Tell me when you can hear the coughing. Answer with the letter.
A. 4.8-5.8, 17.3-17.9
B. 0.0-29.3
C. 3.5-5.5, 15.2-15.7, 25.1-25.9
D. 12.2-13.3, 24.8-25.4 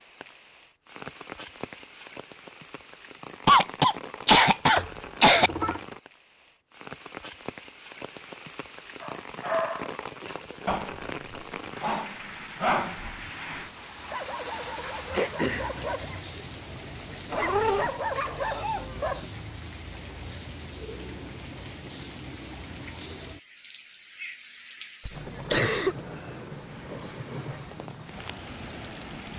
C.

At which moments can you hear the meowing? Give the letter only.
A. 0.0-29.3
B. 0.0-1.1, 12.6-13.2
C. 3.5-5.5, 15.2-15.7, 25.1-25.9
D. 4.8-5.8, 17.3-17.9
D.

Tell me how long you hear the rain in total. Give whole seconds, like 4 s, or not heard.
29 s.